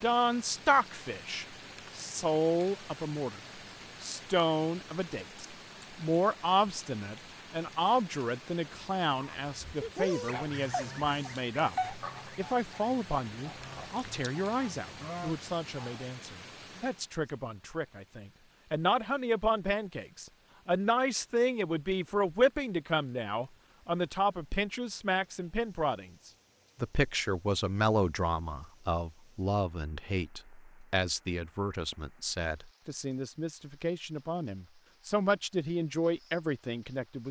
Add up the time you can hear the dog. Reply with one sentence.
The dog can be heard for 2 seconds in total.